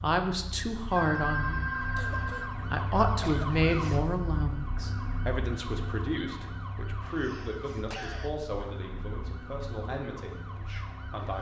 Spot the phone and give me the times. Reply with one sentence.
You can hear the phone from 0.9 to 2.5 s.